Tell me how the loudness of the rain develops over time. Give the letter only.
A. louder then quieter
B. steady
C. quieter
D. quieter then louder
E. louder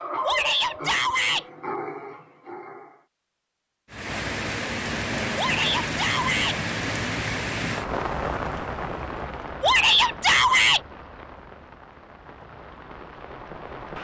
C.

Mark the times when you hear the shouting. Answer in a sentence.
You can hear the shouting from 0.2 to 1.4 s, from 5.3 to 6.5 s and from 9.6 to 10.8 s.